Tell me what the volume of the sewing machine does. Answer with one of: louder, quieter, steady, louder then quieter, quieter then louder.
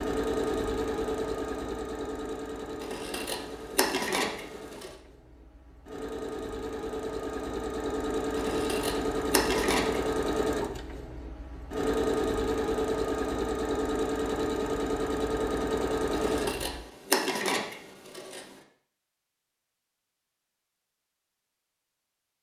quieter then louder.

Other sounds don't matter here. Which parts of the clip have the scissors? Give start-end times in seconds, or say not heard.
2.8-4.9, 8.3-10.1, 16.1-18.6.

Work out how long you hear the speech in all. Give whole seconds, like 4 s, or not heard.
not heard.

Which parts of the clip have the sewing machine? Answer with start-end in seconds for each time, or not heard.
0.0-16.8.